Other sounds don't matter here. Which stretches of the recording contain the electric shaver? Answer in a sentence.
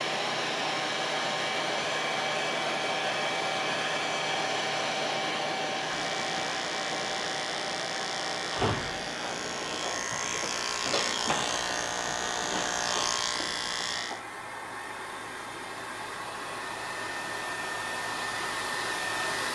You can hear the electric shaver from 5.8 to 14.2 s.